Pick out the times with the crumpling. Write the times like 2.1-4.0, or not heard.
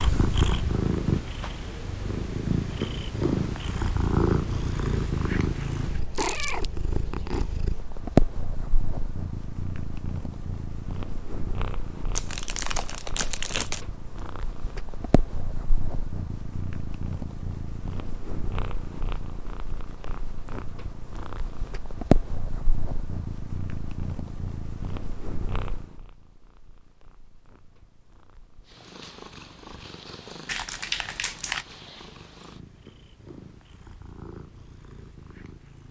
6.2-6.7, 12.2-13.8, 30.4-31.6.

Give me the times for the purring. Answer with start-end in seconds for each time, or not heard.
0.0-35.8.